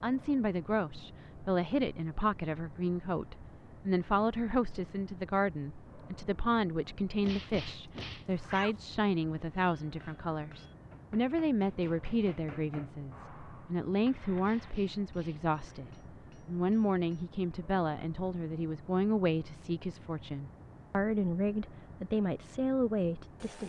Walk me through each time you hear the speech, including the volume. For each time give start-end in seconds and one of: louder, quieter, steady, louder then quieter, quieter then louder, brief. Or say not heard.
0.0-23.6 steady.